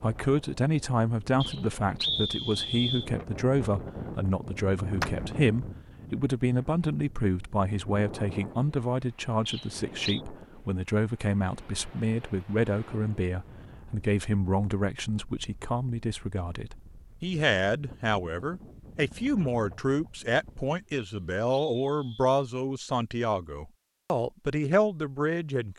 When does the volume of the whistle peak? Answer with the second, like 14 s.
2 s.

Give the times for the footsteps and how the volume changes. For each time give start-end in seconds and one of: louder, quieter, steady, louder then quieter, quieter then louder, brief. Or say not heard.
not heard.